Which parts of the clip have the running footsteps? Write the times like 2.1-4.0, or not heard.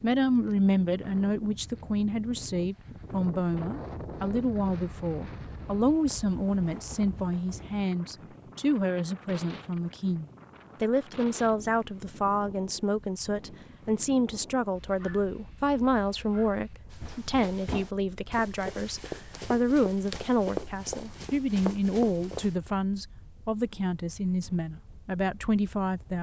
16.9-22.6.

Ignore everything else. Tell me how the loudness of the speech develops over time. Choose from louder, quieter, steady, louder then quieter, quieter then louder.
steady.